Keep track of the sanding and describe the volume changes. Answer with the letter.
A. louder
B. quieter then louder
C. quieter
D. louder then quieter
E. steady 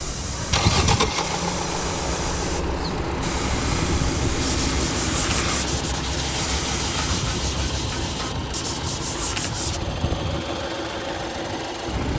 E.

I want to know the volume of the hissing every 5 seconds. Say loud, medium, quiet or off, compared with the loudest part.
loud, loud, off.